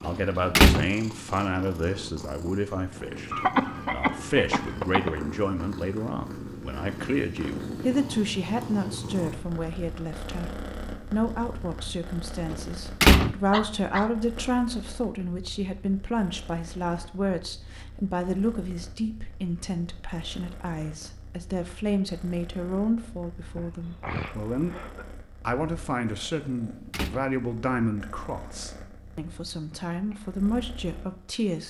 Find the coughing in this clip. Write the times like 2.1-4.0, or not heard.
3.3-5.2, 13.1-14.1, 23.6-25.1.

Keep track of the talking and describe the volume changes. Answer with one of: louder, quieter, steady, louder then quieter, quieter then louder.
steady.